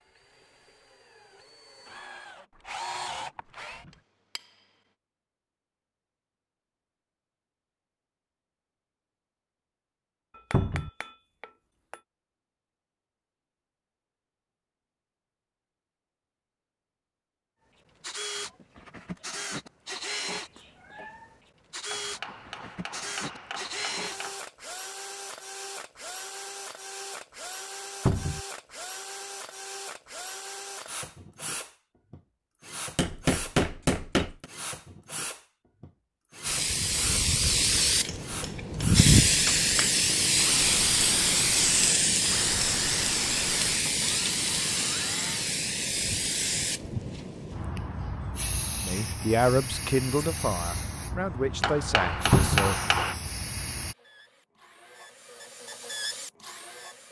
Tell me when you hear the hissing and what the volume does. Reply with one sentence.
The hissing can be heard from 36.4 to 54.0 s, getting quieter.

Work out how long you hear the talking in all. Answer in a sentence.
The talking can be heard for 4 seconds in total.